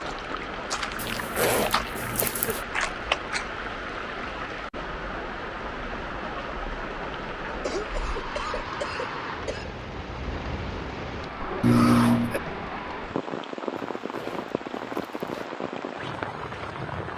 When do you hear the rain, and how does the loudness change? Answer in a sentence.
You can hear the rain from 0.0 to 17.1 s, at a steady volume.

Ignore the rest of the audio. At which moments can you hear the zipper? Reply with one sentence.
The zipper can be heard from 0.9 to 2.6 s and from 13.8 to 15.5 s.